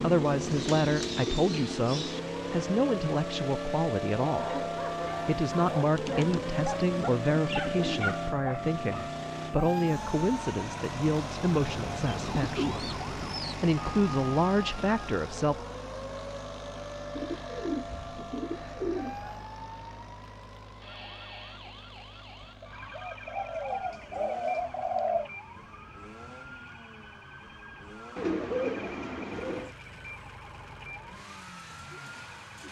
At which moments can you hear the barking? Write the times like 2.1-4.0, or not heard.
4.3-9.1.